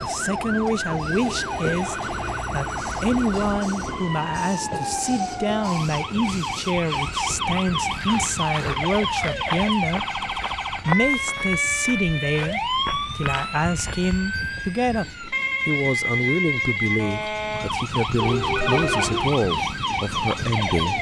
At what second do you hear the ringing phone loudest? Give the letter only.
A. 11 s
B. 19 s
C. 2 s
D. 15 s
B.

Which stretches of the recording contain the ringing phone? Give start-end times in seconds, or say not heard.
1.3-2.4, 18.1-19.3.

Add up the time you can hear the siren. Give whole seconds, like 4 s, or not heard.
21 s.